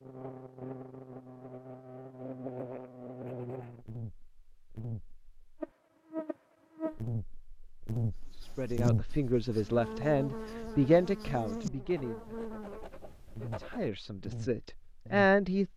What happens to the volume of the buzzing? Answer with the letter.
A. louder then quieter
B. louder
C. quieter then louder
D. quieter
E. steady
A.